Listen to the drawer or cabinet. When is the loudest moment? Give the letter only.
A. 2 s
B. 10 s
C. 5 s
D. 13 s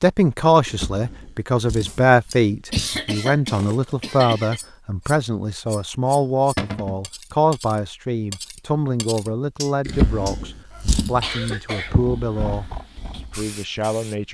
B.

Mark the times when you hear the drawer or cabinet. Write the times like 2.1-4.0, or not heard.
0.7-3.0, 6.5-7.0, 9.8-12.1.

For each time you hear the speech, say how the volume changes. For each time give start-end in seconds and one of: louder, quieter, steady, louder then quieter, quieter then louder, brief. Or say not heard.
0.0-14.2 quieter.